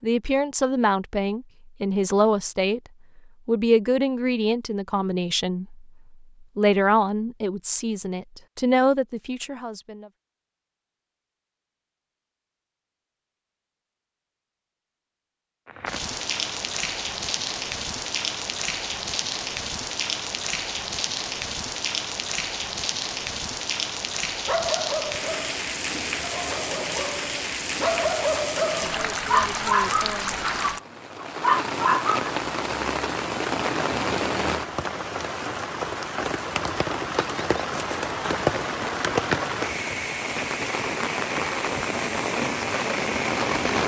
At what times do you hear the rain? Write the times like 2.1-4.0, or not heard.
15.7-43.8.